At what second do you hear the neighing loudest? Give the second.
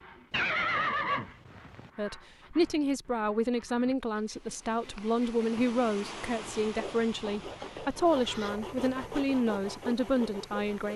1 s.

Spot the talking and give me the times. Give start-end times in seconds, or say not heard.
1.9-10.9.